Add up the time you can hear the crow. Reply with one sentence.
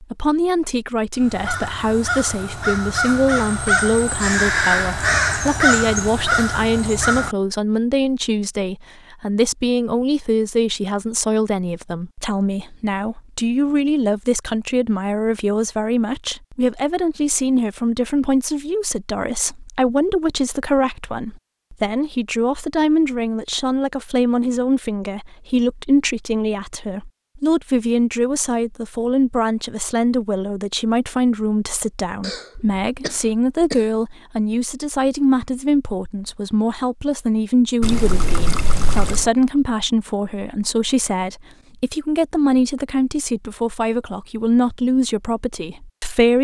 You can hear the crow for 6 seconds altogether.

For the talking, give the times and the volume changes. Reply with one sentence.
The talking can be heard from 0.0 to 46.3 s, at a steady volume.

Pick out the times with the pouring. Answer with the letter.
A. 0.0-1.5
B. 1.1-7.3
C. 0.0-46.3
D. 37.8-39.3
D.